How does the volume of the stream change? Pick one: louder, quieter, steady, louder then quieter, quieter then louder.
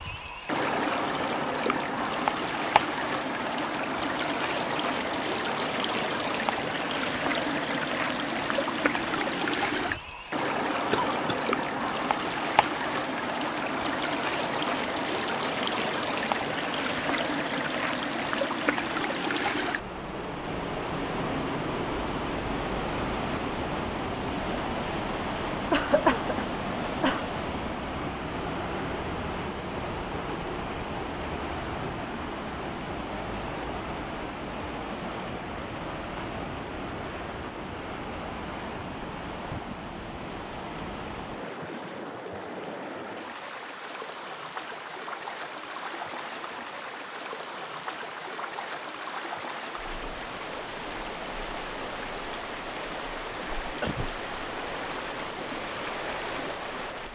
quieter.